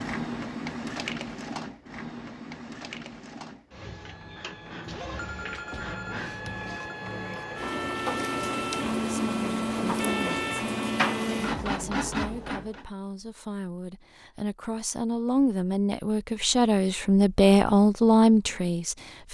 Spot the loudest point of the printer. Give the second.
11 s.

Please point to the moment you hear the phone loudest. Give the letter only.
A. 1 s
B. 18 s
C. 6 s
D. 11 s
C.